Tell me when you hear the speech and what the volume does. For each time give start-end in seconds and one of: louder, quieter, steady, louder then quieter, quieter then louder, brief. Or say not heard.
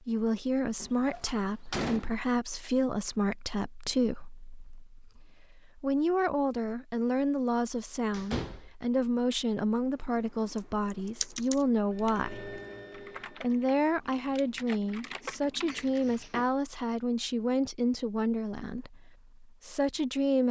0.1-12.6 steady
13.4-20.4 quieter.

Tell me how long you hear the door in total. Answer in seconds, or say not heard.
3 s.